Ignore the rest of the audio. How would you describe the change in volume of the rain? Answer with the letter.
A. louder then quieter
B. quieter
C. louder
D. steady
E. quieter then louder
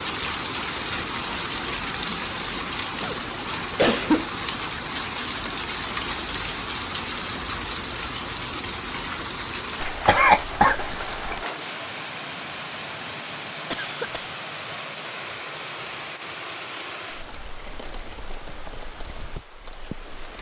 B.